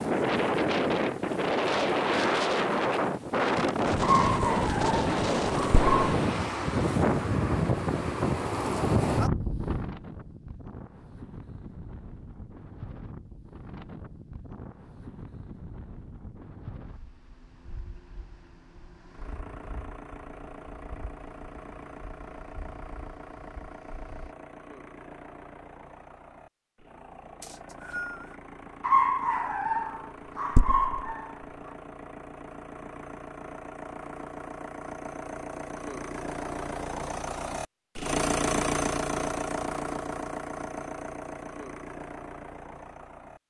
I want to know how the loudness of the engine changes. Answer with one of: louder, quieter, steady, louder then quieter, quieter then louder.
louder.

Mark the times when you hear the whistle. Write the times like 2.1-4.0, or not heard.
27.4-28.4.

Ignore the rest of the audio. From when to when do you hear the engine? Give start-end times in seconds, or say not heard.
19.1-43.4.